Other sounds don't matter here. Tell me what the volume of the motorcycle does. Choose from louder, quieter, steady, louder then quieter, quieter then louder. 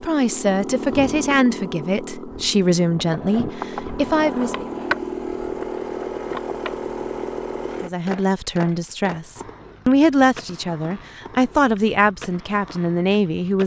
quieter then louder.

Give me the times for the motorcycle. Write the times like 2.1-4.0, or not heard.
0.0-7.9.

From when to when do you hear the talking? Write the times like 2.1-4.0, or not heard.
0.0-4.7, 7.8-13.6.